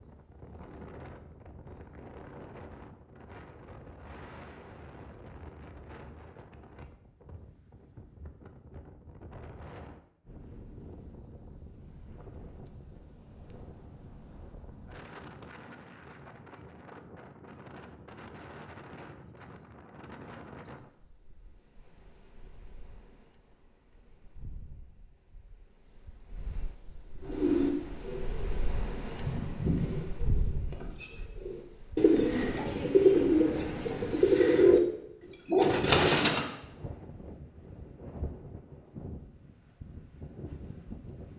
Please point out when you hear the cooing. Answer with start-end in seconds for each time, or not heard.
27.2-34.8, 35.5-36.5.